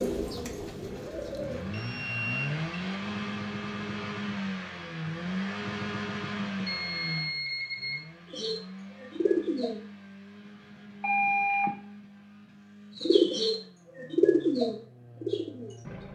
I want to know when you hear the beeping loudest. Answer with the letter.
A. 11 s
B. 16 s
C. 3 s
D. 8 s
A.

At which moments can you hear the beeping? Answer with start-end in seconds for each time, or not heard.
1.7-2.8, 6.7-8.0, 11.0-11.7.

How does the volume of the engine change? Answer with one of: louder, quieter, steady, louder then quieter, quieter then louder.
quieter.